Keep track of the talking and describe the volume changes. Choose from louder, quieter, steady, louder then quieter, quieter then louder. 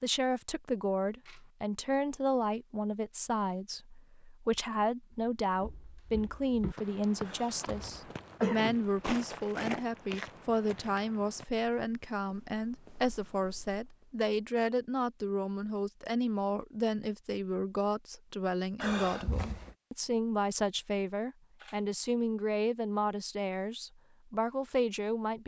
steady.